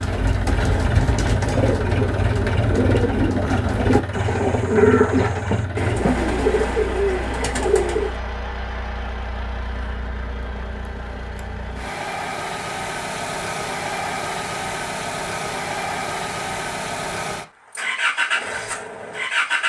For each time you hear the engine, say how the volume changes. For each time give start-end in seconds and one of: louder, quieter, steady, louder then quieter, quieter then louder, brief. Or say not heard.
0.0-19.6 quieter then louder.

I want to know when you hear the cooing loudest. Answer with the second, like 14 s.
5 s.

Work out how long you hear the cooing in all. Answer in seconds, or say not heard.
8 s.